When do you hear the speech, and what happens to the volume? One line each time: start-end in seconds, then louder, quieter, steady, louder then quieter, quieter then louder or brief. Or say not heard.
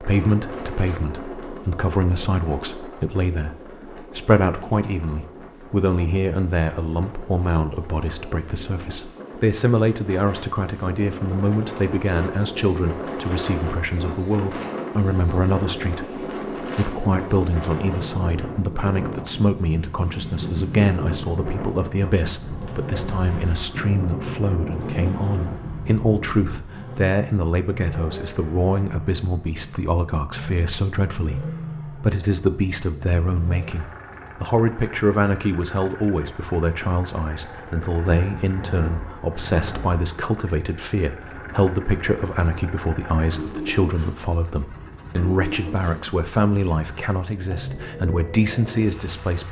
0.0-49.4 steady.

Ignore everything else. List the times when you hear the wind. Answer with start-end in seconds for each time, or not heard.
0.0-26.6.